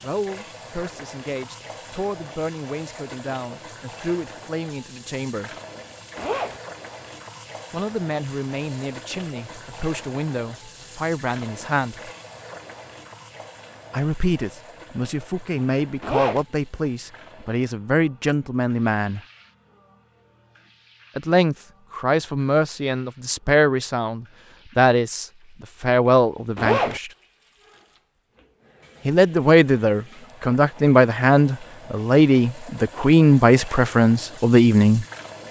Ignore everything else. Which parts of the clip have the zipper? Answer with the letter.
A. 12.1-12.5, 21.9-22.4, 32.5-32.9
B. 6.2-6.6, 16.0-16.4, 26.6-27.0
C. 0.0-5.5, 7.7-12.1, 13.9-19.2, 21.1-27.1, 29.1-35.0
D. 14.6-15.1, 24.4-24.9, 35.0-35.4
B.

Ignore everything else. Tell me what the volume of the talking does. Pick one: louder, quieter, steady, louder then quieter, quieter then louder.
louder.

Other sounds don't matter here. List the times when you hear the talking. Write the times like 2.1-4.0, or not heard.
0.0-5.5, 7.7-12.1, 13.9-19.2, 21.1-27.1, 29.1-35.0.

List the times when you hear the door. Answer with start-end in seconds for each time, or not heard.
not heard.